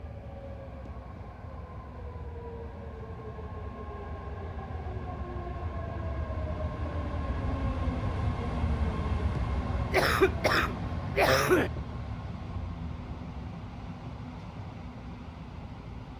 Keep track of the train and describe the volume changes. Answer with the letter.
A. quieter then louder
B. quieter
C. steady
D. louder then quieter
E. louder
D.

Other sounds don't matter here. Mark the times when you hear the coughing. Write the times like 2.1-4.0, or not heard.
9.9-11.7.